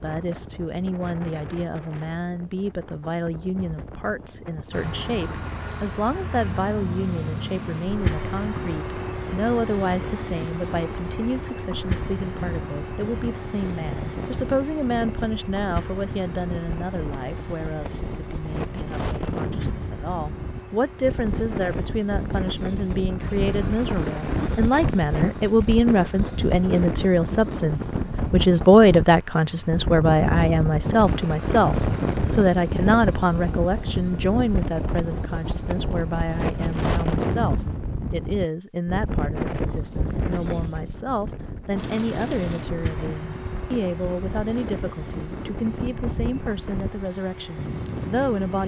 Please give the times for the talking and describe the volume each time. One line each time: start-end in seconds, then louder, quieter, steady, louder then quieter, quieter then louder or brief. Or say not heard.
0.0-48.6 louder then quieter.